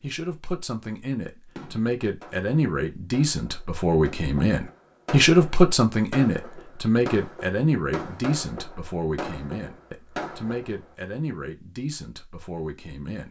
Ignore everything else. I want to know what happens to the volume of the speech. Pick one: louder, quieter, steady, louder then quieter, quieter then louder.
louder then quieter.